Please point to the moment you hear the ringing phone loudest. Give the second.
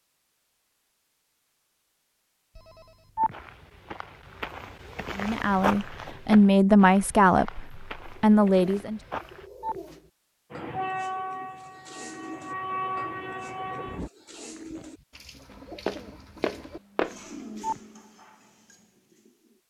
3 s.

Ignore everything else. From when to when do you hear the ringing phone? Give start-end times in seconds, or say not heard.
2.5-3.4, 9.0-9.8, 17.2-17.8.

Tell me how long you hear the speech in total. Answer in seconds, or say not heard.
4 s.